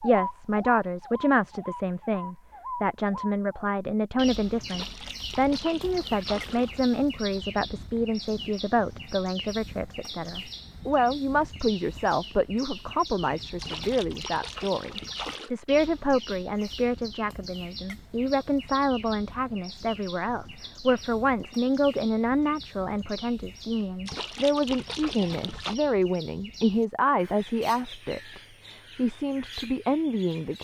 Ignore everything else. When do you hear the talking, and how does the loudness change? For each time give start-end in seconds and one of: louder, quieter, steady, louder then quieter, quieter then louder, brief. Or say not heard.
0.0-30.5 steady.